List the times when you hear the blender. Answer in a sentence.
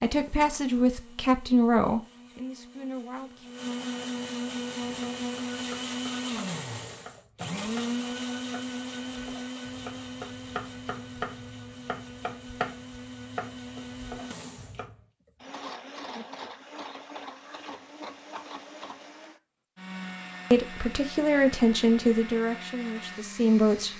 You can hear the blender from 0.1 to 23.9 s.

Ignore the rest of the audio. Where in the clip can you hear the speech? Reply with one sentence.
You can hear the speech from 0.0 to 3.5 s and from 20.5 to 23.9 s.